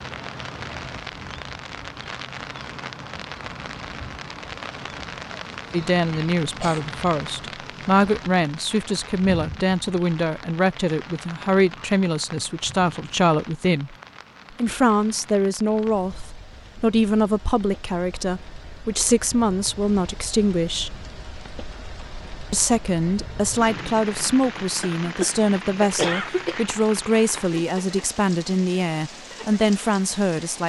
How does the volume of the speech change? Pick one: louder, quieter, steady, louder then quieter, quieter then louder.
steady.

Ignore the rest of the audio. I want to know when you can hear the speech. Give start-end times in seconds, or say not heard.
5.7-13.9, 14.6-20.9, 22.5-30.6.